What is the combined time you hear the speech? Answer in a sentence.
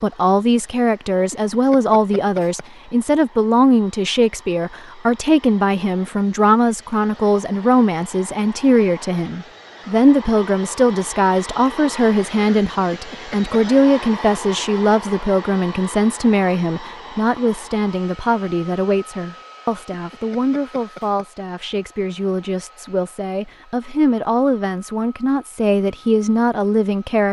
The speech can be heard for 27 seconds in total.